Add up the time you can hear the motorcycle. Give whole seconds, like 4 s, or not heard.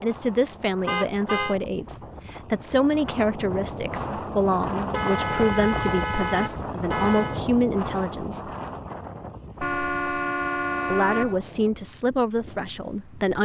not heard.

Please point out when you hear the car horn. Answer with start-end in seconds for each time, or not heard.
0.8-1.6, 4.9-7.4, 9.6-11.3.